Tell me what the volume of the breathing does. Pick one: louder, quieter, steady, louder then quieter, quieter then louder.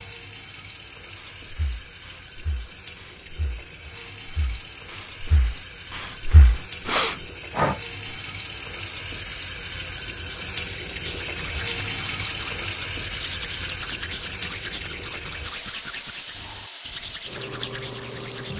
louder.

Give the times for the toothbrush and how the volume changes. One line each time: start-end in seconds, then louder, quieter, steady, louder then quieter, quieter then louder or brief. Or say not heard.
11.0-18.5 steady.